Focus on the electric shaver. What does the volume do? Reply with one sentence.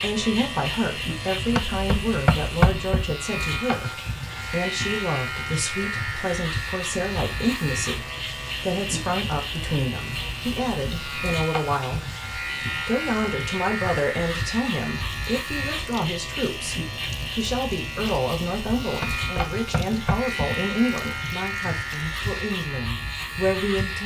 The loudness of the electric shaver stays about the same.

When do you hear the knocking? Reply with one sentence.
The knocking can be heard from 1.6 to 3.0 s and from 19.0 to 20.4 s.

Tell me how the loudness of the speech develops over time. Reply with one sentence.
The loudness of the speech stays about the same.